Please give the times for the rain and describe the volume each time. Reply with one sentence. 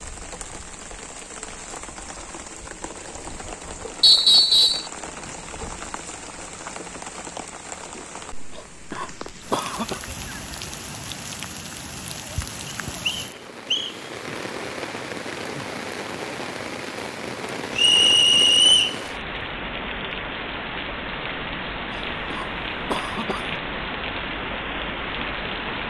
The rain can be heard from 0.0 to 25.8 s, getting louder.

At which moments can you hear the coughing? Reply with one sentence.
You can hear the coughing from 8.5 to 10.0 s and from 21.9 to 23.6 s.